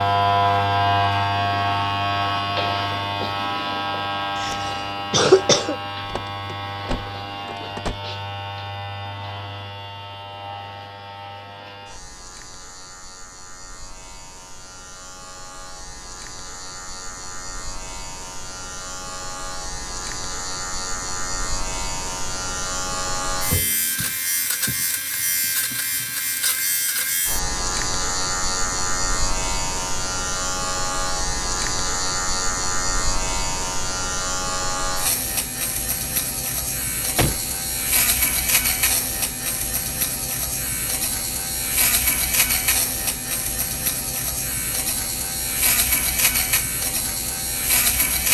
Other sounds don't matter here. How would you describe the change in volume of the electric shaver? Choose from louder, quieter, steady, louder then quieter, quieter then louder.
quieter then louder.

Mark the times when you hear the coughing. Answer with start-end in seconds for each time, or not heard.
4.3-5.8.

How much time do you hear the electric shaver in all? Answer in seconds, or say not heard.
48 s.